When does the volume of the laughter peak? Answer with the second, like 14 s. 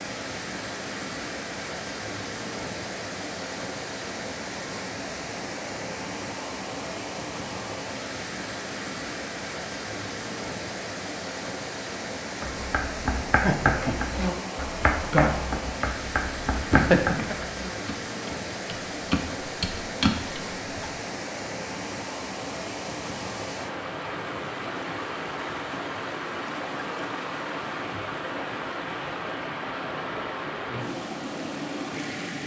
17 s.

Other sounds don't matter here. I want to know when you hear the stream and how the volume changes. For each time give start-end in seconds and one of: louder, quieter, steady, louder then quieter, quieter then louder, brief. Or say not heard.
0.0-32.4 steady.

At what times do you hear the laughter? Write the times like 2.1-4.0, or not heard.
13.4-13.9, 16.7-17.4.